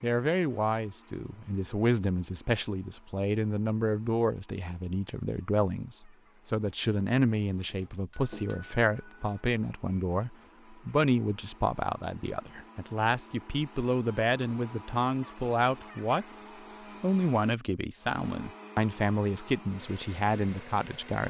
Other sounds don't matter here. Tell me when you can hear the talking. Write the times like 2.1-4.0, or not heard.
0.0-16.2, 17.0-21.2.